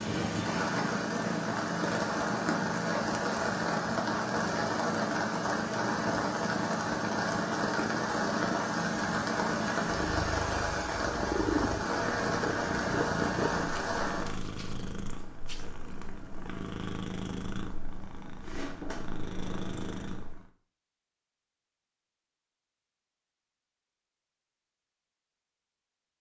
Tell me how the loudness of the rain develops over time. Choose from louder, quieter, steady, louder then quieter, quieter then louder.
steady.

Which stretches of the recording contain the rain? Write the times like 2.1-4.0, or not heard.
0.0-14.3.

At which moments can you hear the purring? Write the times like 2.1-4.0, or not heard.
0.0-20.5.